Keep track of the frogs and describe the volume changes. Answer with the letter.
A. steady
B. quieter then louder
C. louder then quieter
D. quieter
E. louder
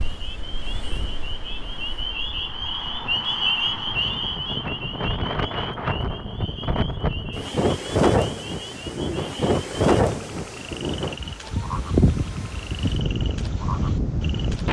C.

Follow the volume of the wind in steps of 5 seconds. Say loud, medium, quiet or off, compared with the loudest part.
quiet, loud, loud.